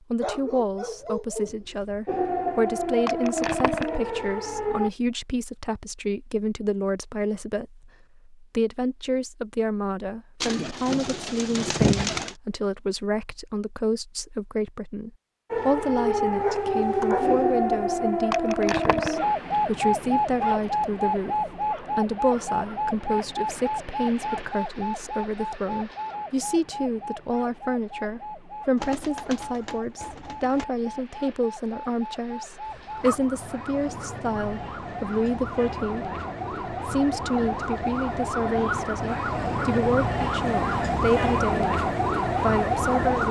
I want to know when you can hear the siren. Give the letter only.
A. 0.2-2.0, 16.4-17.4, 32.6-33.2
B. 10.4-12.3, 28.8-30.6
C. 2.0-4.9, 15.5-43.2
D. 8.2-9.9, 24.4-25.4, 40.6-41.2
C.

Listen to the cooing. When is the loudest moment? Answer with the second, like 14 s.
12 s.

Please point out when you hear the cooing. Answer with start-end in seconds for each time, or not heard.
10.4-12.3, 28.8-30.6.